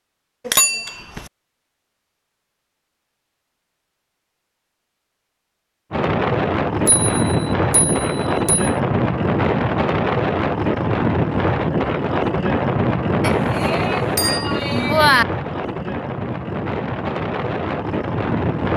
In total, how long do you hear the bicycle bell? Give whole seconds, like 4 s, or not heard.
5 s.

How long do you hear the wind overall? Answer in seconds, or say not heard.
13 s.